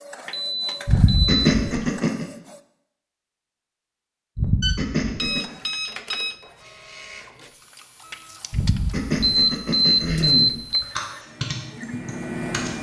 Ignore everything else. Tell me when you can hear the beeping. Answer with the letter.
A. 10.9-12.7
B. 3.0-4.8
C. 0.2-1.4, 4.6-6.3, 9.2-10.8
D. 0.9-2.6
C.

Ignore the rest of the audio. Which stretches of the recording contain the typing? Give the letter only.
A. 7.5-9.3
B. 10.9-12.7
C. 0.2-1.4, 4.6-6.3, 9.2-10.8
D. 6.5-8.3
B.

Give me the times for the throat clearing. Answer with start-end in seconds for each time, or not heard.
0.8-2.2, 4.3-5.5, 8.5-10.6.